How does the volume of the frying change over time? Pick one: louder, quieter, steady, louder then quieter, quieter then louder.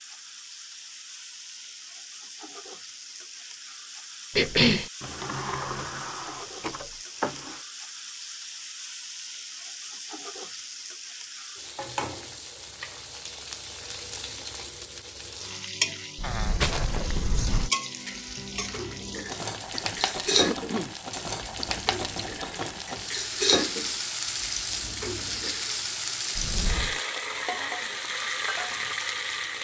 louder.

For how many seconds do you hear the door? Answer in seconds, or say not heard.
5 s.